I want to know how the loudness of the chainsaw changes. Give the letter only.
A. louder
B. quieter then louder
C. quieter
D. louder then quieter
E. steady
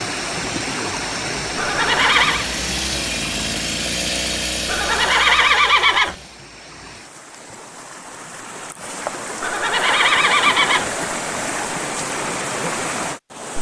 C.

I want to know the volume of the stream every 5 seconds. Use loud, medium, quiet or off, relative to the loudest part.
loud, medium, loud.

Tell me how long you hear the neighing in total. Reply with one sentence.
You can hear the neighing for 4 seconds altogether.